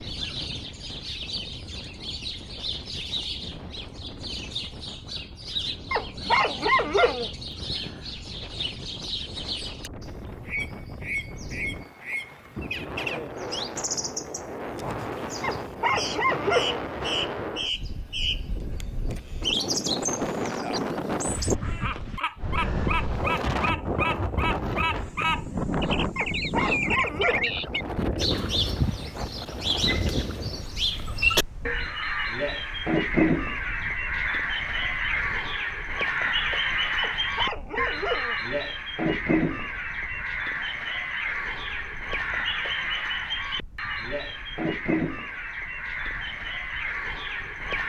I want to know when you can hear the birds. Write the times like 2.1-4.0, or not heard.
0.0-47.8.